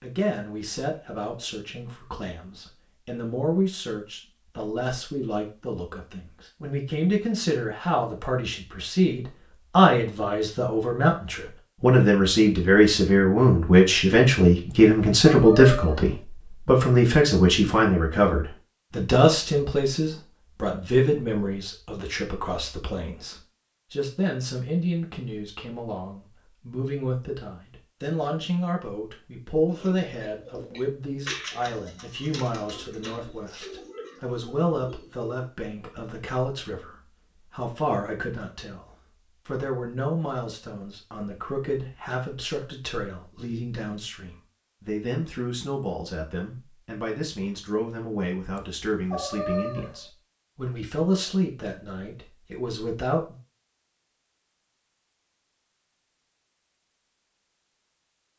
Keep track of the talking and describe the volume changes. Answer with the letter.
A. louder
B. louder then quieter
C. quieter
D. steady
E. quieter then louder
B.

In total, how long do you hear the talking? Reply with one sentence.
You can hear the talking for 53 seconds altogether.